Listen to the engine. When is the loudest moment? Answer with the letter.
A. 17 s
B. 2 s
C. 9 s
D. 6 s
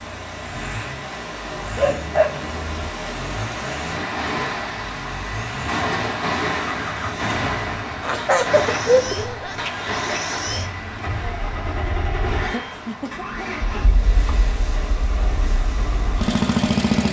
A.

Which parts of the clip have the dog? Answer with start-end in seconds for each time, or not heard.
1.8-2.9.